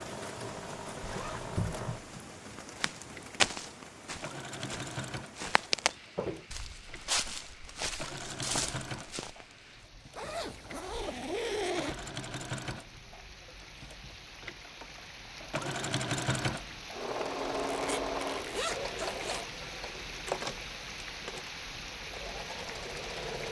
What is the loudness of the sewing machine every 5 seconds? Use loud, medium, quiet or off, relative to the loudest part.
medium, medium, medium, loud, medium.